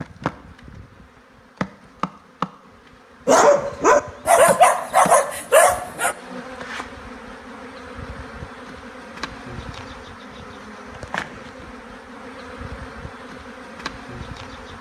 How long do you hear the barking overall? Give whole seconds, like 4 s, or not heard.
3 s.